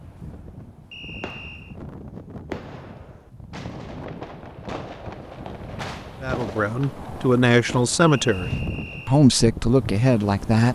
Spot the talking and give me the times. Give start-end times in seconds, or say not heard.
6.2-10.7.